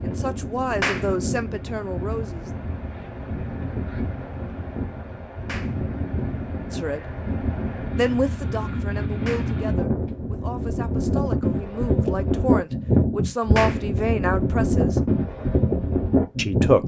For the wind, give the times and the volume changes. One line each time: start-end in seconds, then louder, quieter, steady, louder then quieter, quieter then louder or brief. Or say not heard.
0.0-16.8 louder.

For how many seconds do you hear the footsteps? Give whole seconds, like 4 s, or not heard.
not heard.